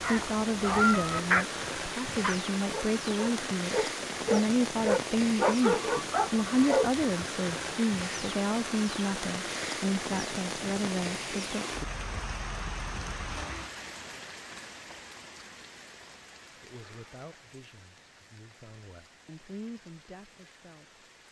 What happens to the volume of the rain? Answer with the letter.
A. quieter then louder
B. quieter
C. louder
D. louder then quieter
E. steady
B.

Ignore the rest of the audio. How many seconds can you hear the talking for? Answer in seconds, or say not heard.
16 s.